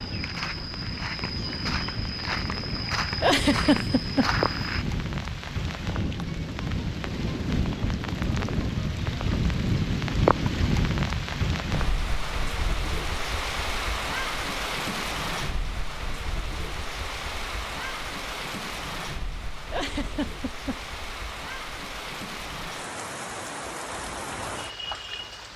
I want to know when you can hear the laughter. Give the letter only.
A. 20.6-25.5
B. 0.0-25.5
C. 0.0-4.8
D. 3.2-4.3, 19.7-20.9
D.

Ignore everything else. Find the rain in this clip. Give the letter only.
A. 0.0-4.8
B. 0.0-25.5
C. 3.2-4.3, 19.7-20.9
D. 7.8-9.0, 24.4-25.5
B.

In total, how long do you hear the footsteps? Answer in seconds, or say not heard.
5 s.